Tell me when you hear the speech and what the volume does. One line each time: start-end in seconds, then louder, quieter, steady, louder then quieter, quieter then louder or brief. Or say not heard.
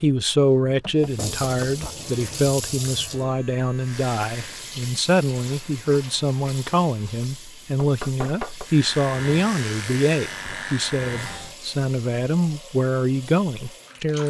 0.0-14.2 steady.